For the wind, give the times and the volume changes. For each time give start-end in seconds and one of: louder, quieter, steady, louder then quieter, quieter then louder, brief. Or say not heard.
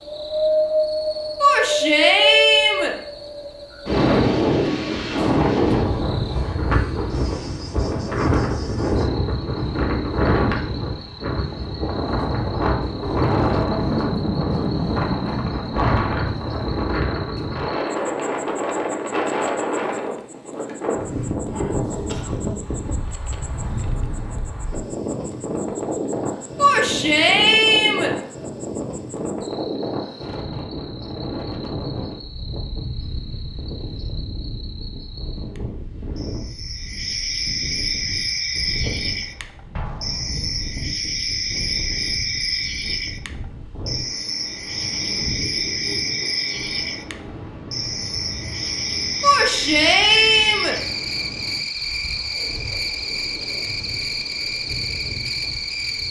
0.0-56.0 quieter.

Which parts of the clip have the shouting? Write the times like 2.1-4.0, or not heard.
1.4-3.0, 26.6-28.1, 49.2-50.8.